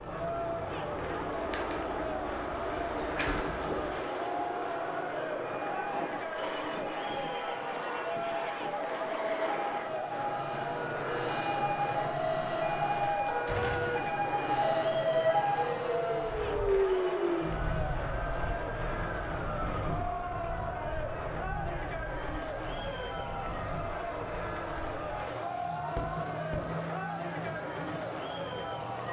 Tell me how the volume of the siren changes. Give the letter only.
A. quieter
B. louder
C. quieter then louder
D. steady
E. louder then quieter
E.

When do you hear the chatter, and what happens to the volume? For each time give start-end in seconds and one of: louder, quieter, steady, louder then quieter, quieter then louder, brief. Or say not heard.
0.0-29.0 steady.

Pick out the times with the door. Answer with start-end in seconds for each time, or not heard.
2.7-3.6, 13.2-14.0, 25.9-26.8.